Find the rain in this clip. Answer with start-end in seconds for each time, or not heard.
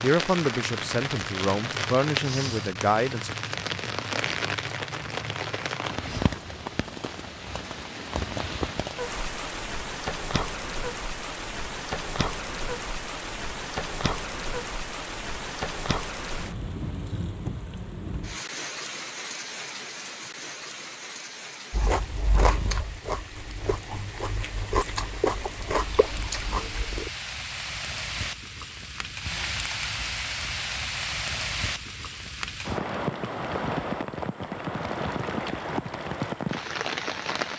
0.0-37.5.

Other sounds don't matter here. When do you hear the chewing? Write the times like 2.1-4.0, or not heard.
21.7-27.1.